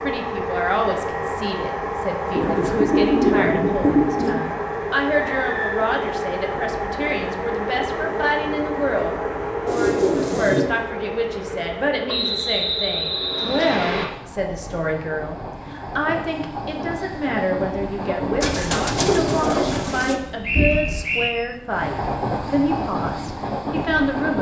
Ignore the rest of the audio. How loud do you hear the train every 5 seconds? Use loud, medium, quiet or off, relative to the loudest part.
loud, loud, medium, loud, loud.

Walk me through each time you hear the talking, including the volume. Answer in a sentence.
The talking can be heard from 0.0 to 24.3 s, at a steady volume.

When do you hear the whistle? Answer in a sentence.
The whistle can be heard from 5.3 to 5.8 s, from 12.1 to 14.1 s and from 20.4 to 21.3 s.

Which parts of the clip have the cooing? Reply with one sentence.
The cooing can be heard from 2.4 to 4.4 s, from 9.7 to 10.6 s and from 18.4 to 20.1 s.